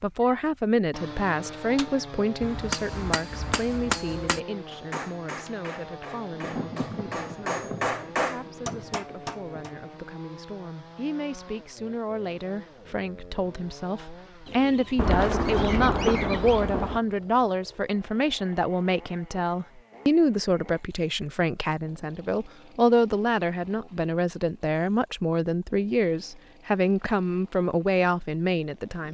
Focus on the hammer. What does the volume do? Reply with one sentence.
The volume of the hammer goes down, then up.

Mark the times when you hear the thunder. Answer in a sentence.
The thunder can be heard from 6.3 to 9.8 s and from 14.9 to 17.0 s.